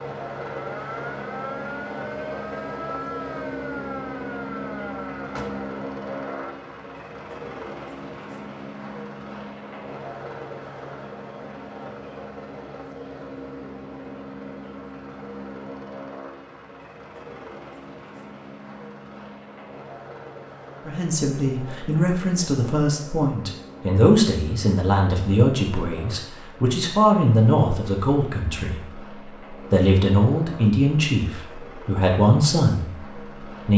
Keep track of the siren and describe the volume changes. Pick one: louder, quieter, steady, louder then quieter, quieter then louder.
steady.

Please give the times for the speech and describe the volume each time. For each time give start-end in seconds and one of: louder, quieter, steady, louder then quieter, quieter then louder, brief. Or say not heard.
20.9-33.7 steady.